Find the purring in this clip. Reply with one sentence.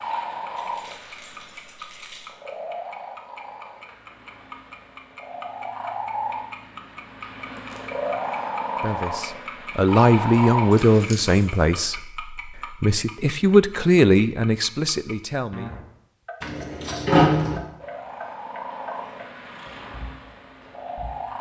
You can hear the purring from 0.0 to 11.1 s and from 17.8 to 21.3 s.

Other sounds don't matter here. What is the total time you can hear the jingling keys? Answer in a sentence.
You can hear the jingling keys for 4 seconds altogether.